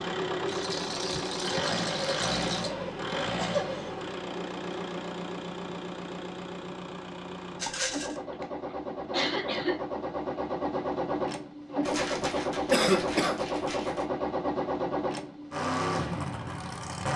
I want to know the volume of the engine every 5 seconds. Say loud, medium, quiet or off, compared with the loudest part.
loud, medium, loud, loud.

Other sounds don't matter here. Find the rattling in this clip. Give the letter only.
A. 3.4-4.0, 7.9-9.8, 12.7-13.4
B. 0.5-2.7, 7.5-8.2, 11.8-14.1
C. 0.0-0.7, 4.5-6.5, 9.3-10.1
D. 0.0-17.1
B.